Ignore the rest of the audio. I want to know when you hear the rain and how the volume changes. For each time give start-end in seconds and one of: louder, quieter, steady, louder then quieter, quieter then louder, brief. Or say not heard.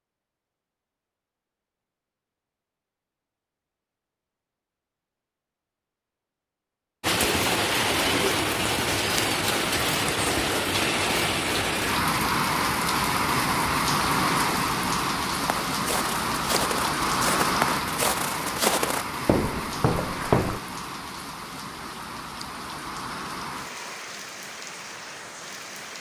7.0-25.9 quieter.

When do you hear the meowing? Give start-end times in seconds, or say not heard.
not heard.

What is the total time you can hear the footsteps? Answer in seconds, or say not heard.
5 s.